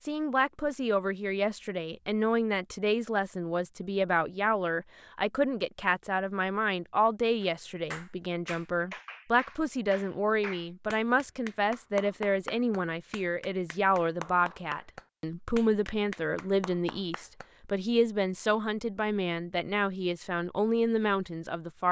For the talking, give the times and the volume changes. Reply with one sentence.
You can hear the talking from 0.0 to 21.8 s, at a steady volume.